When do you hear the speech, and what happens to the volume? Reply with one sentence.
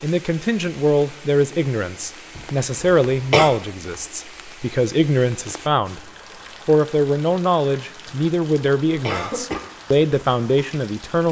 You can hear the speech from 0.0 to 11.2 s, at a steady volume.